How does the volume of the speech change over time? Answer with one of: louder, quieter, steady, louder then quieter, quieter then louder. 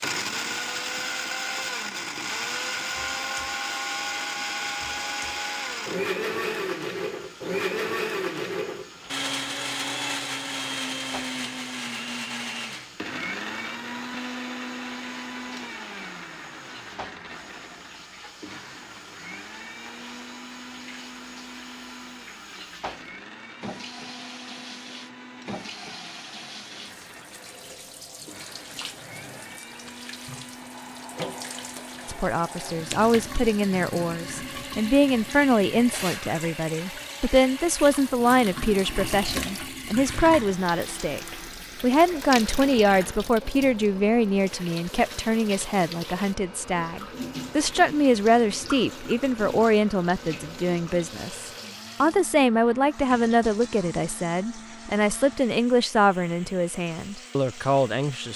steady.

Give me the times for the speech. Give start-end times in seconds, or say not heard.
32.0-58.3.